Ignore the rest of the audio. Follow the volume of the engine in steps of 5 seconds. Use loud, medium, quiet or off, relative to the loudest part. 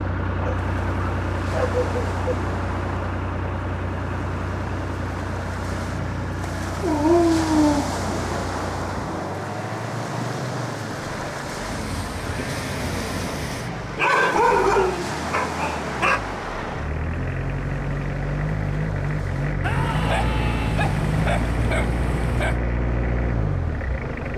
loud, medium, medium, loud, loud.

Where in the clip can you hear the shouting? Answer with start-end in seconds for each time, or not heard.
19.6-20.8.